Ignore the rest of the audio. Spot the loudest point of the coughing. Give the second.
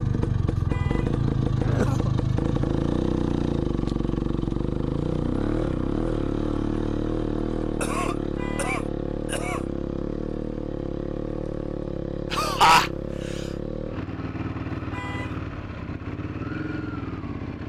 13 s.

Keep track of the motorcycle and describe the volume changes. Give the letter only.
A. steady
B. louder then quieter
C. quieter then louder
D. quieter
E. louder
D.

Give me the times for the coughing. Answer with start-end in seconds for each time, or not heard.
1.6-2.1, 7.8-9.7, 12.3-13.4.